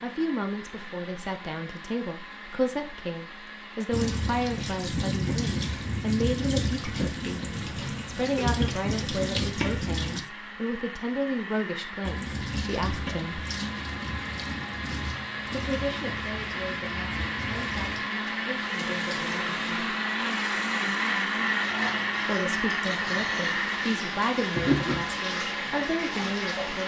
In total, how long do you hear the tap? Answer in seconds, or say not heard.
21 s.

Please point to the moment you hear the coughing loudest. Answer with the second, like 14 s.
25 s.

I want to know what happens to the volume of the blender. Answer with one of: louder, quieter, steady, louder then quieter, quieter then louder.
louder.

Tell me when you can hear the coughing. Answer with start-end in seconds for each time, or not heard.
7.7-8.5, 24.6-25.1.